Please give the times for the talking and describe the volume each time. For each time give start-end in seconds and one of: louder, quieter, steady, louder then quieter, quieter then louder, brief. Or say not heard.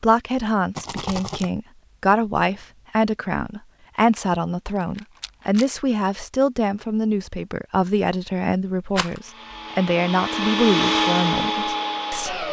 0.0-12.4 steady.